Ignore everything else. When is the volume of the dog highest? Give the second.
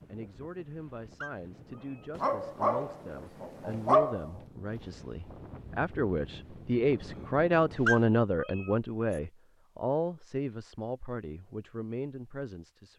4 s.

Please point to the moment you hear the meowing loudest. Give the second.
8 s.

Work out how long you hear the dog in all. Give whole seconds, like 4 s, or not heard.
2 s.